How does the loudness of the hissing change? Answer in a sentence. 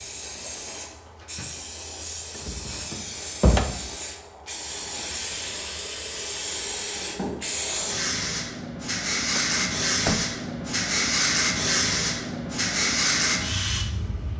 The loudness of the hissing goes up.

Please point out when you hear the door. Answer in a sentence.
You can hear the door from 2.4 to 4.0 s and from 9.3 to 10.2 s.